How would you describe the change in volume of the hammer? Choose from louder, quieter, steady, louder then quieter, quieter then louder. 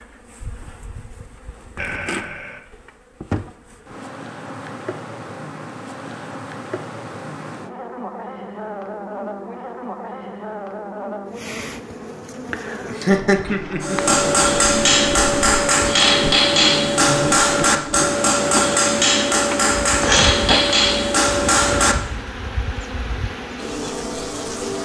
steady.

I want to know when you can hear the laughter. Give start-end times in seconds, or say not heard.
1.8-2.6, 12.8-14.2, 20.0-20.6.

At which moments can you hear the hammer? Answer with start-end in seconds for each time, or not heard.
13.8-21.9.